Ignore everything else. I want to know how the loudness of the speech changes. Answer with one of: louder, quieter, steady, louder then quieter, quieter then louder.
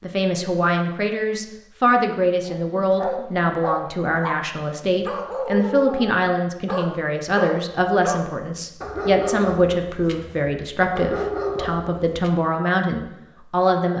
steady.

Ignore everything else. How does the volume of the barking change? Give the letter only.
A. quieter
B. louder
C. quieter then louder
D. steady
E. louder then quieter
D.